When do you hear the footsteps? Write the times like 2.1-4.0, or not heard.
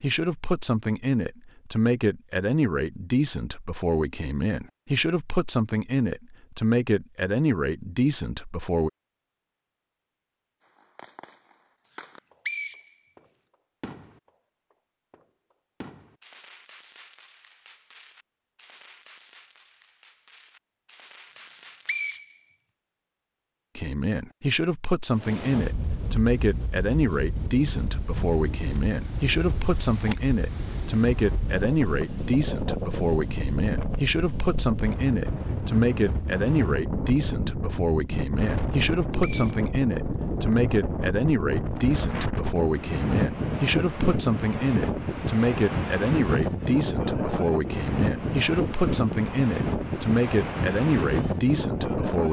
not heard.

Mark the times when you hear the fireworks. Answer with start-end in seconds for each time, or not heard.
10.6-22.2.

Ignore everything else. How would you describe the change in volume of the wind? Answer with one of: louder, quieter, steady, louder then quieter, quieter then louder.
louder.